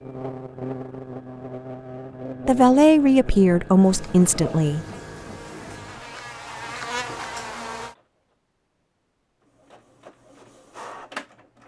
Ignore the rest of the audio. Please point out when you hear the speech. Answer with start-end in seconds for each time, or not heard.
2.5-4.8.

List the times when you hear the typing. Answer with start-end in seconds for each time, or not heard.
not heard.